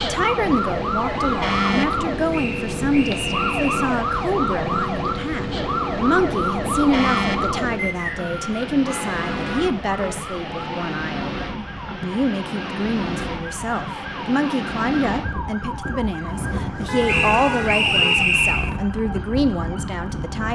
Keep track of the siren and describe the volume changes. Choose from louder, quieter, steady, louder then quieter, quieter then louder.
quieter.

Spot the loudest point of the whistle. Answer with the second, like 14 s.
18 s.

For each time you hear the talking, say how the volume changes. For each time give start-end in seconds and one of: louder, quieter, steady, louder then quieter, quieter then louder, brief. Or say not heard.
0.0-20.5 steady.